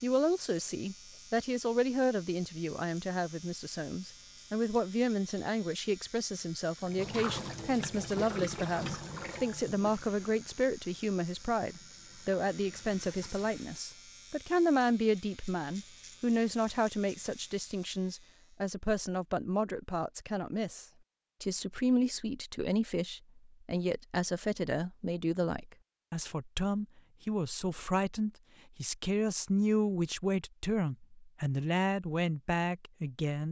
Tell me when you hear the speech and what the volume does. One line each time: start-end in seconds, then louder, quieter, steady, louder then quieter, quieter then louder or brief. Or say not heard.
0.0-33.4 steady.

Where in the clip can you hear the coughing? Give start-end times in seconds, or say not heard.
not heard.